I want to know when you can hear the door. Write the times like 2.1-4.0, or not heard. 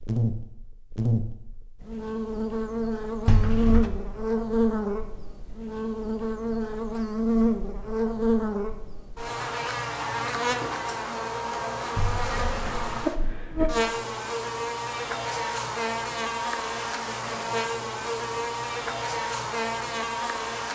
3.2-3.9, 11.9-13.8.